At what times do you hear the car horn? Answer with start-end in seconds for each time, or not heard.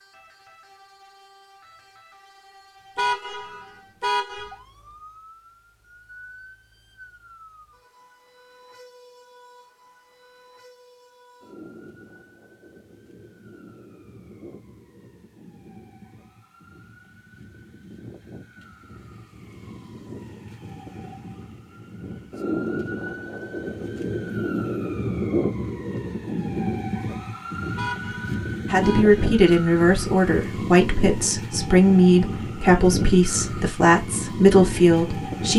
3.0-4.5, 27.8-29.4.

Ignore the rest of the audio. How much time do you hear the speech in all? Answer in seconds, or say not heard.
7 s.